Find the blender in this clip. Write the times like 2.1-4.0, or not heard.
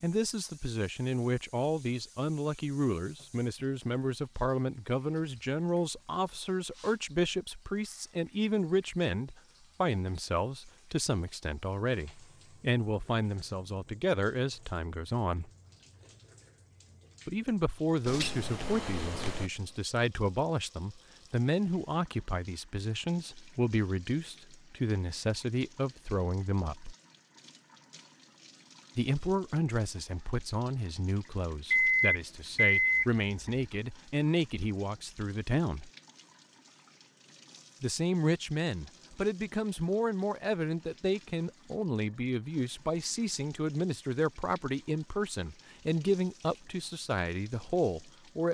not heard.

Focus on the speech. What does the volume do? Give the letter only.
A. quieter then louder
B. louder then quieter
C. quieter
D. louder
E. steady
E.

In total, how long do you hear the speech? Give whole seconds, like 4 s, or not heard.
43 s.